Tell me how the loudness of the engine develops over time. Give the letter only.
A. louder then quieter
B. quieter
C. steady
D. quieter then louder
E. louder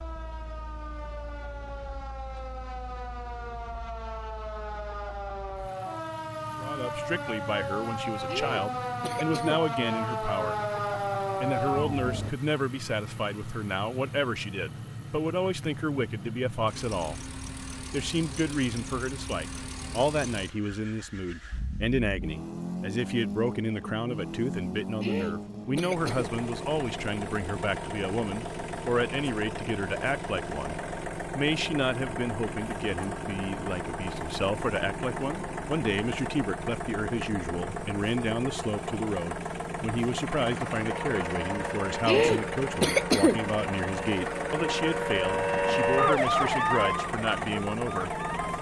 E.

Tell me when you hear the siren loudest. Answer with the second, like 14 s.
46 s.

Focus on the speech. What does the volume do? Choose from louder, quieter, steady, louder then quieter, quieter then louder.
steady.